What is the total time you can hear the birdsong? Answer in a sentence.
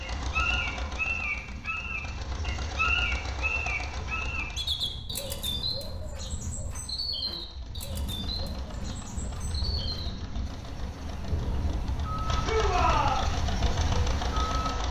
You can hear the birdsong for 15 seconds altogether.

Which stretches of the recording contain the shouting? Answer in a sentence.
You can hear the shouting from 12.4 to 13.2 s.